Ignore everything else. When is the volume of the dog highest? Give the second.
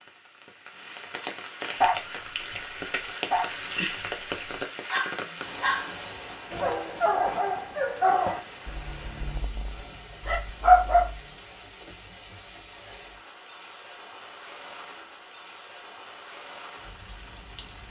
11 s.